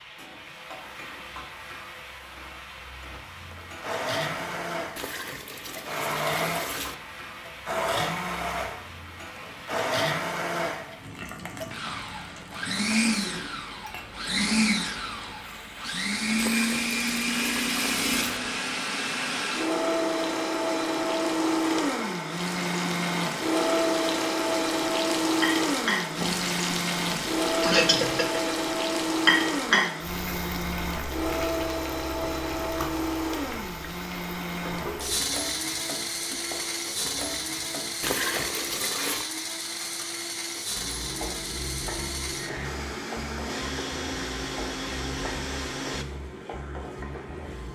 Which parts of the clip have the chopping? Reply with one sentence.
The chopping can't be heard in this clip.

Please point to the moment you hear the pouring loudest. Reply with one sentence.
The loudest moment of the pouring is at 38 seconds.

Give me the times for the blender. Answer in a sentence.
The blender can be heard from 3.5 to 46.0 s.